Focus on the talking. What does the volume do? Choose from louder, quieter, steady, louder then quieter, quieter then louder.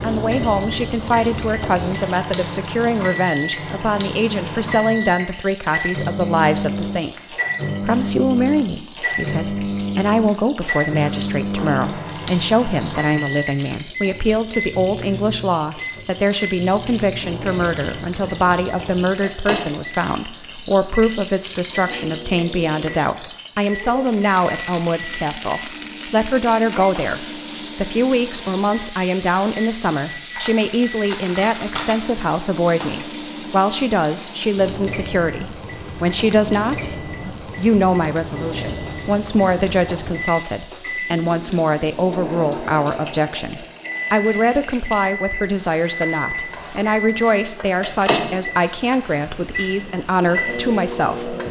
steady.